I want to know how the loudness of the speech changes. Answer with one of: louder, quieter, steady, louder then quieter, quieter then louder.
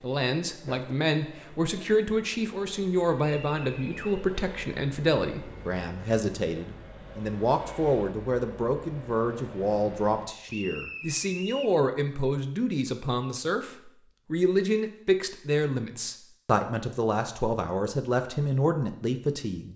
steady.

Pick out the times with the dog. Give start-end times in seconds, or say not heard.
not heard.